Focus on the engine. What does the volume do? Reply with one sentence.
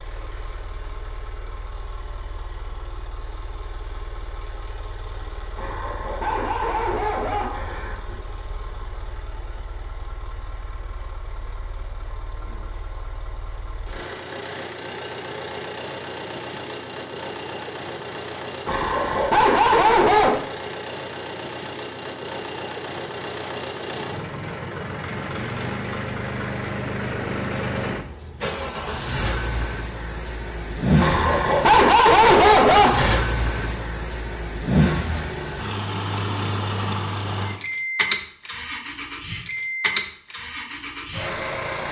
The loudness of the engine goes up.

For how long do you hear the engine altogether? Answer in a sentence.
You can hear the engine for 42 seconds altogether.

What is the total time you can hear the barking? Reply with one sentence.
You can hear the barking for 7 seconds altogether.